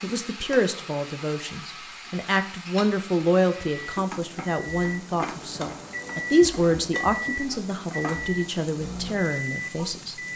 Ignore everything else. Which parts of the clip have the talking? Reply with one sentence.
You can hear the talking from 0.0 to 10.2 s.